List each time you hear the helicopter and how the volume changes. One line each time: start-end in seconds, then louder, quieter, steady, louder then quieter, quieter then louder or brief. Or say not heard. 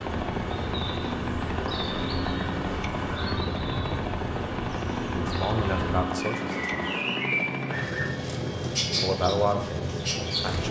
0.0-10.6 steady.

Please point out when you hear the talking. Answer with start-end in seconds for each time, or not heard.
5.1-6.8, 9.0-10.6.